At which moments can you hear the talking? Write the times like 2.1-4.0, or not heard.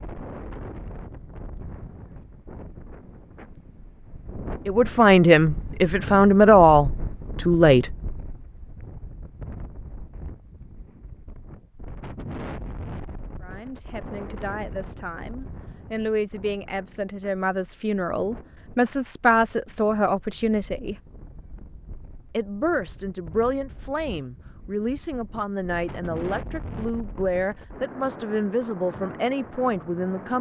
4.7-8.0, 13.4-20.9, 22.3-30.3.